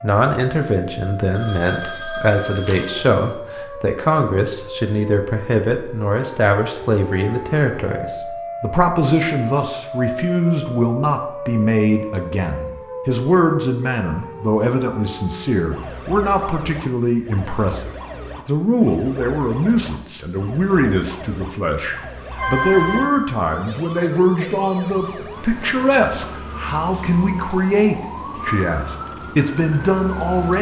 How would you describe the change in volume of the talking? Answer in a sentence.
The volume of the talking stays about the same.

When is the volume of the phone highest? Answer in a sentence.
The loudest moment of the phone is at 23 seconds.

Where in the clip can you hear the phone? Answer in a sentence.
The phone can be heard from 1.4 to 3.4 s and from 21.9 to 23.4 s.